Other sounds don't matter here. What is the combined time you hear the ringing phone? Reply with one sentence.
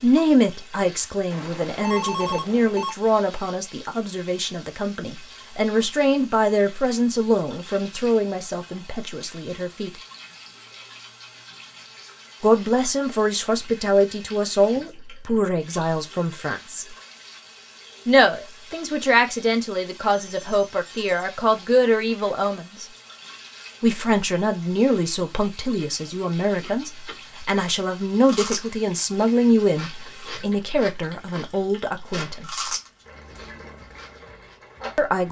The ringing phone can be heard for 3 seconds in total.